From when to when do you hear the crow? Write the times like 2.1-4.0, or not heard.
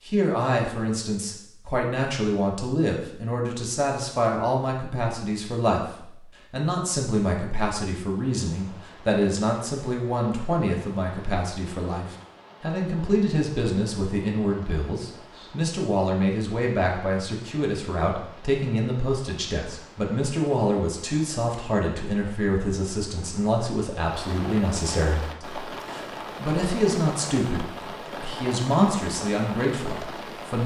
not heard.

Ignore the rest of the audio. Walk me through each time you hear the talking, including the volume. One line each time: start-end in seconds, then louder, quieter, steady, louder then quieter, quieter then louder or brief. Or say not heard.
0.1-30.6 steady.